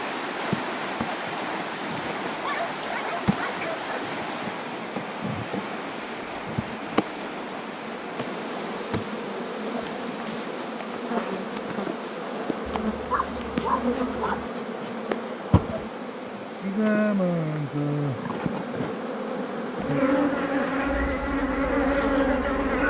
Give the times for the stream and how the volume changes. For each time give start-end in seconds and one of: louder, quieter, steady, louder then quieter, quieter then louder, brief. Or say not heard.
0.0-22.8 quieter.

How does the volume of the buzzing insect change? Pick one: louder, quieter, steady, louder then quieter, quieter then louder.
louder.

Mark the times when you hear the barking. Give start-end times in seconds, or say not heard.
2.3-4.1, 12.9-14.4.